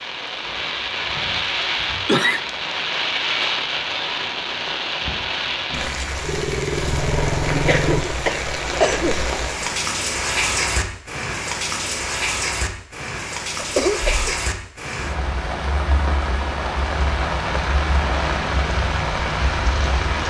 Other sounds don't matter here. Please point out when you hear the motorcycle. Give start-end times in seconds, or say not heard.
6.2-8.1.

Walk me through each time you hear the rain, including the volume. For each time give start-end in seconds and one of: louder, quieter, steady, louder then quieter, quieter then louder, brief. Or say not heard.
0.0-20.2 steady.